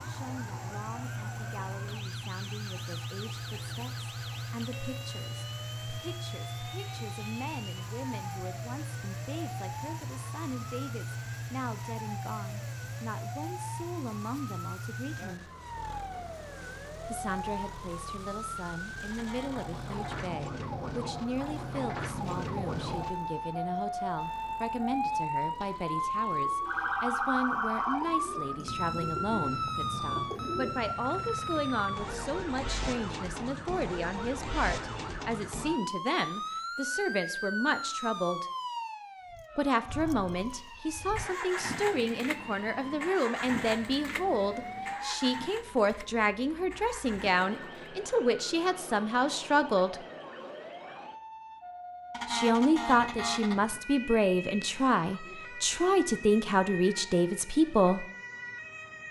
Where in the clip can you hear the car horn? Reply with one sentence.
You can hear the car horn from 19.1 to 19.8 s and from 52.1 to 53.6 s.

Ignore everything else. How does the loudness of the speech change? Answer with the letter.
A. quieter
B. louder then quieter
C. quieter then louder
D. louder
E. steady
D.